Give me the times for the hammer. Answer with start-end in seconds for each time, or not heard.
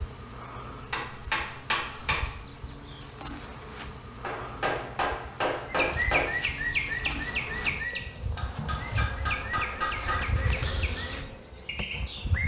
0.8-2.3, 4.2-6.2, 8.3-10.4.